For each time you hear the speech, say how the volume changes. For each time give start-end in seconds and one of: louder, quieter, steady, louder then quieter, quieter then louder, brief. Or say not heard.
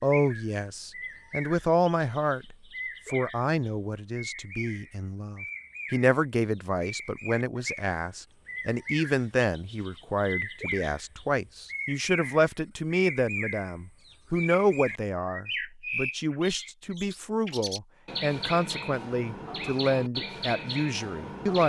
0.0-21.6 steady.